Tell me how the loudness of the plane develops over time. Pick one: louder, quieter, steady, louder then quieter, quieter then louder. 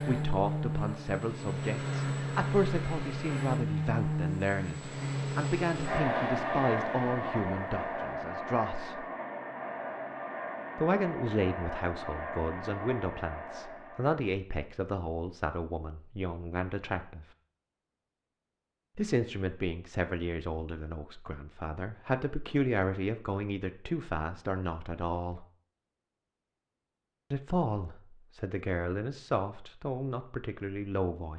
quieter.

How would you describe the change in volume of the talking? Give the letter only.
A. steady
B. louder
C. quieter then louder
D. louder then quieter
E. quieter
A.